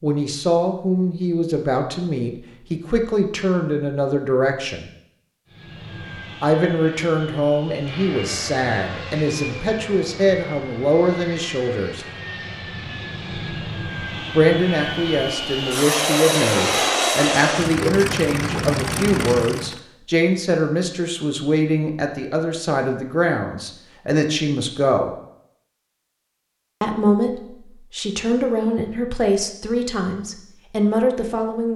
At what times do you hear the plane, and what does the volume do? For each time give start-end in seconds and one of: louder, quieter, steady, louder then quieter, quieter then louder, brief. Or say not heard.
5.5-19.8 louder.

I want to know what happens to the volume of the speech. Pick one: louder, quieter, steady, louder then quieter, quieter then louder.
steady.